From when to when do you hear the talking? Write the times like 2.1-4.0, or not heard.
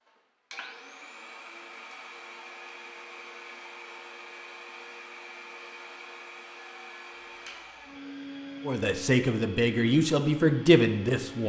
8.7-11.4.